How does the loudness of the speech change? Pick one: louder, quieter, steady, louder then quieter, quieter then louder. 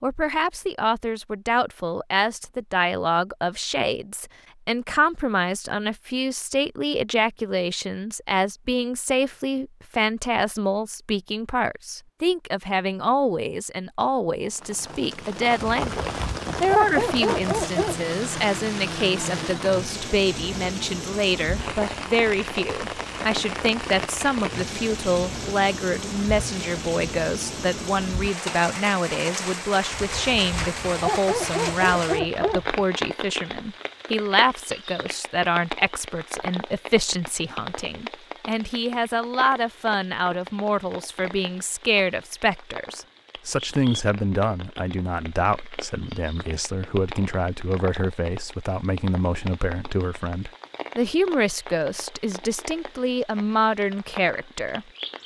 steady.